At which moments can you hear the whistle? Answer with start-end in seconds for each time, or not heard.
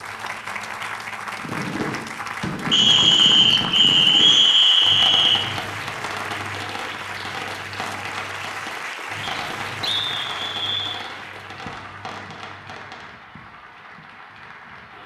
2.7-5.4, 9.2-11.1.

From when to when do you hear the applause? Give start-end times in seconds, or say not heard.
0.0-15.0.